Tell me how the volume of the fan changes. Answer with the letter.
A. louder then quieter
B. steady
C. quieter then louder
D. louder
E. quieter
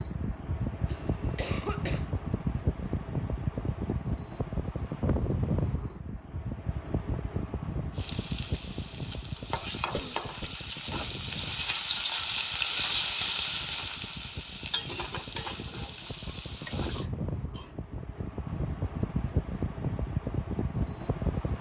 C.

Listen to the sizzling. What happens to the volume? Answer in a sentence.
The loudness of the sizzling goes up, then down.